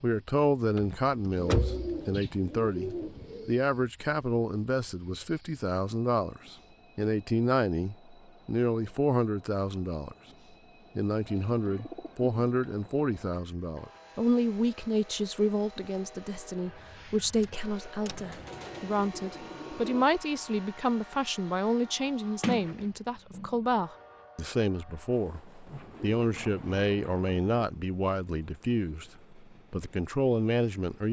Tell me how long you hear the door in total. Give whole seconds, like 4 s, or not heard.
3 s.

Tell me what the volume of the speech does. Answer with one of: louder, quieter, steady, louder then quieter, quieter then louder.
steady.